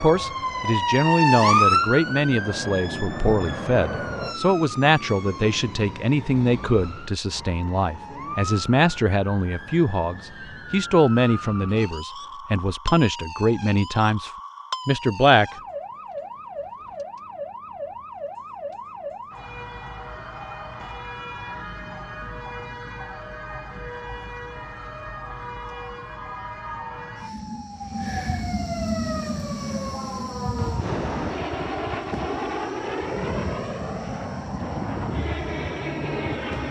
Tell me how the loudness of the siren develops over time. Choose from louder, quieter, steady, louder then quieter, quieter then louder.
quieter.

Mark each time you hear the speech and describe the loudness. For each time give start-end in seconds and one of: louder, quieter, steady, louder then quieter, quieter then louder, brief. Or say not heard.
0.0-15.5 steady.